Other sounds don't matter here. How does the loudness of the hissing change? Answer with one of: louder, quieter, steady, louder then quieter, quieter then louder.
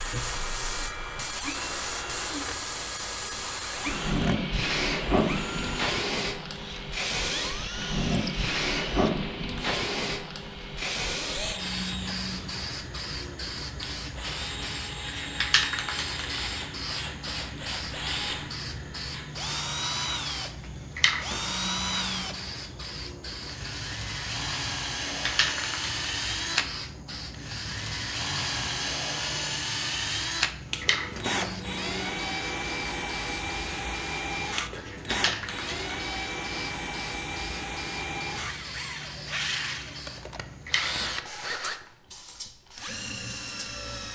quieter.